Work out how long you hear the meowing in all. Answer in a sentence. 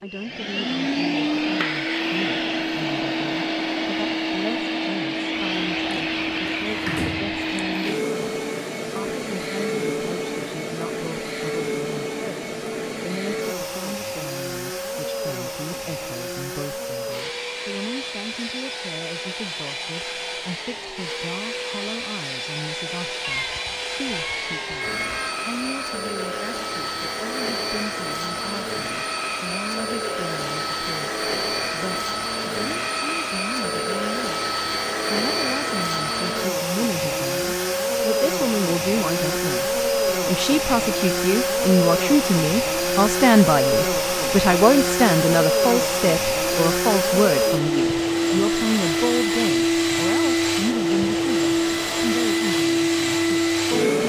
You can hear the meowing for 2 seconds altogether.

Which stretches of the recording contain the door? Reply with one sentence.
You can hear the door from 5.3 to 7.8 s.